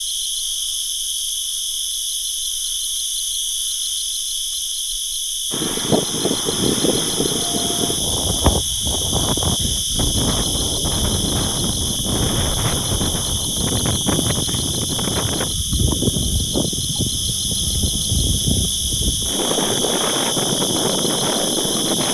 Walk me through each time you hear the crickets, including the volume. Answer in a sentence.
You can hear the crickets from 0.0 to 22.0 s, at a steady volume.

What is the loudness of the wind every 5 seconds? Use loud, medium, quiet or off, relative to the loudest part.
off, loud, loud, loud, loud.